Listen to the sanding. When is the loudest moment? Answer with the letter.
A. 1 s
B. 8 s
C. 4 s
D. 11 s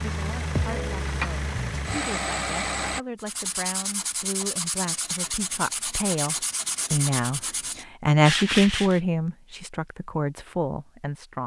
B.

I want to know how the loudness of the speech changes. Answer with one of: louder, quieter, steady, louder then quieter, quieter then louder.
louder then quieter.